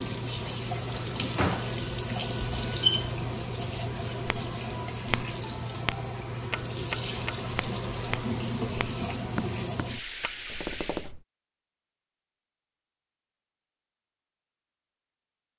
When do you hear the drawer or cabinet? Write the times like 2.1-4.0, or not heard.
0.9-1.7.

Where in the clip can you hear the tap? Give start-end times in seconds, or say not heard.
0.0-11.2.